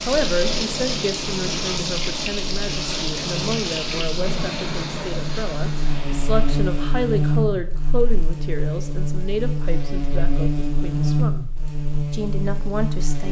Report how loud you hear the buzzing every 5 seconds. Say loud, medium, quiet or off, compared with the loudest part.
medium, loud, loud.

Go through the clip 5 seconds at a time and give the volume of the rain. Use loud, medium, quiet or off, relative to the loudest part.
loud, medium, off.